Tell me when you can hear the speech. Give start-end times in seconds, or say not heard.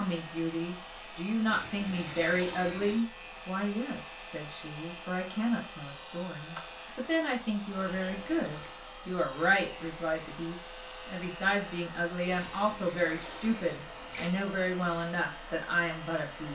0.0-16.5.